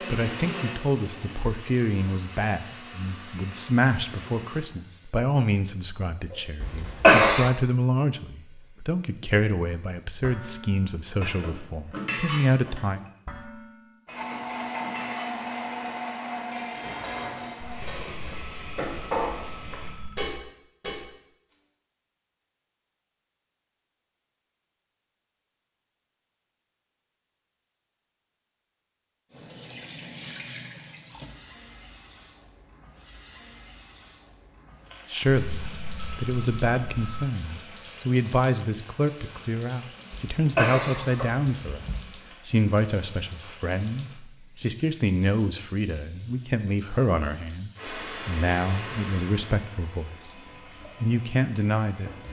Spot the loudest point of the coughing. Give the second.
7 s.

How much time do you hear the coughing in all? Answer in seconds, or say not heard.
3 s.